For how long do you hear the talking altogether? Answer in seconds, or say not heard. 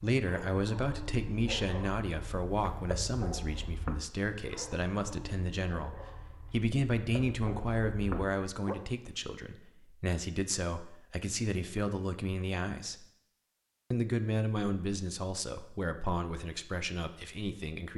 17 s.